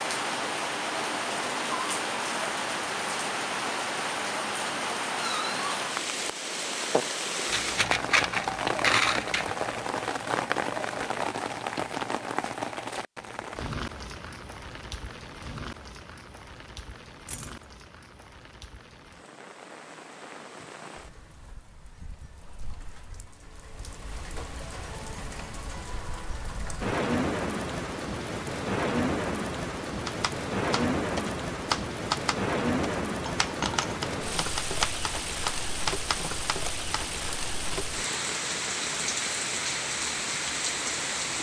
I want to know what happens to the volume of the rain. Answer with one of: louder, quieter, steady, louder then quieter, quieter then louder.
quieter then louder.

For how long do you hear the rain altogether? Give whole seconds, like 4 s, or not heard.
41 s.